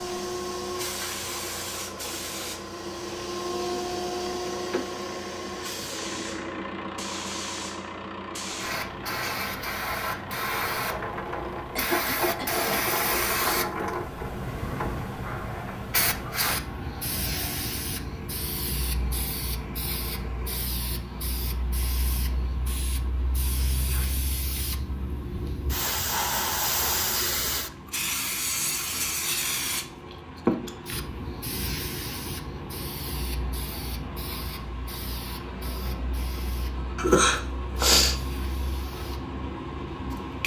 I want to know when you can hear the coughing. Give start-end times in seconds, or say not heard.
11.8-12.9, 37.0-38.1.